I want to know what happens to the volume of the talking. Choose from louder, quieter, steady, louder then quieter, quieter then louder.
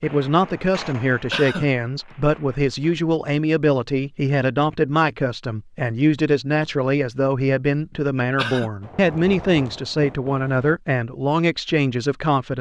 steady.